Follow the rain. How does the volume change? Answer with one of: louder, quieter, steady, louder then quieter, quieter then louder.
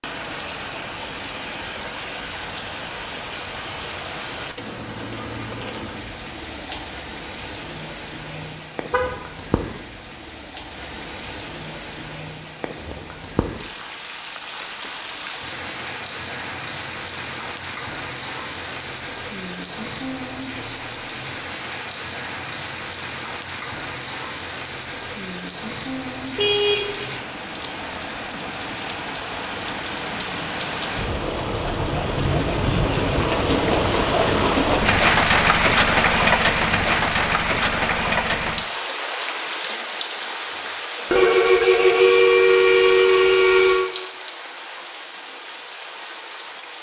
louder then quieter.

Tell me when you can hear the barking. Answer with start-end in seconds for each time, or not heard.
not heard.